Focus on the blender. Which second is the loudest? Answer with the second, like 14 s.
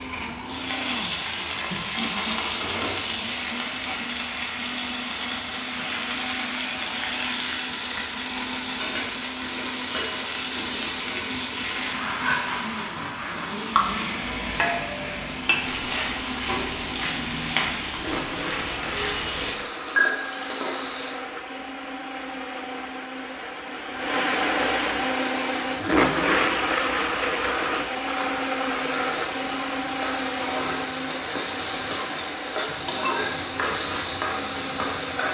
26 s.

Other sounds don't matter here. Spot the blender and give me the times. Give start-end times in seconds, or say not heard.
0.0-35.3.